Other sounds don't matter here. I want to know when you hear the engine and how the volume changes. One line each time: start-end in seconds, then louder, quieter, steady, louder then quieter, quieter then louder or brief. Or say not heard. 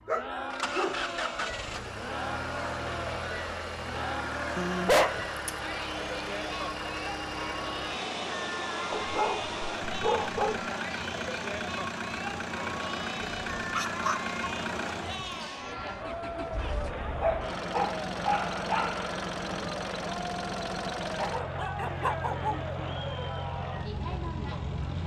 0.0-25.0 steady.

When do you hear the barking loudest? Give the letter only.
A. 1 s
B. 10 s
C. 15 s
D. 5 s
D.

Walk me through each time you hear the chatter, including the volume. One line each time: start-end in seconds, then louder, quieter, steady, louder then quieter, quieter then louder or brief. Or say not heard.
0.0-25.0 steady.